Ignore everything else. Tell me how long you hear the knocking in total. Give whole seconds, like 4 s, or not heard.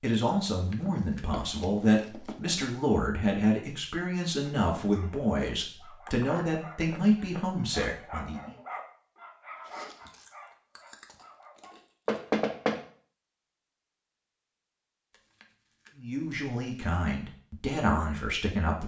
3 s.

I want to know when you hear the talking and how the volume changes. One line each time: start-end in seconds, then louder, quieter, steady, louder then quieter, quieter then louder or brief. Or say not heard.
0.0-8.6 steady
15.9-18.8 brief.